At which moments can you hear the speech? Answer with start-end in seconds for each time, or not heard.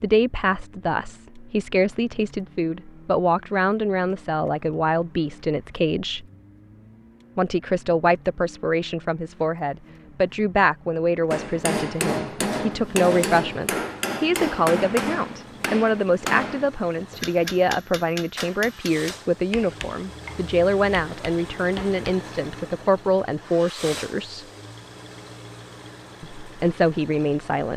0.0-6.2, 7.3-24.4, 26.2-27.7.